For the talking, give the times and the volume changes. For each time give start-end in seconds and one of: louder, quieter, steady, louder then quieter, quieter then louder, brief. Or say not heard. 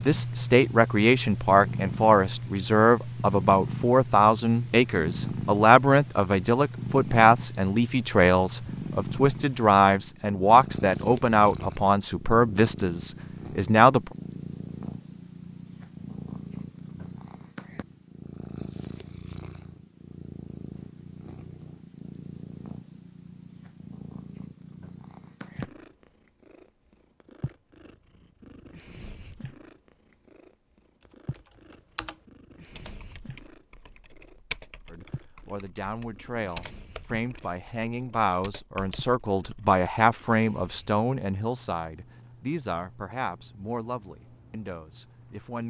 0.0-14.1 steady
34.9-45.6 louder then quieter.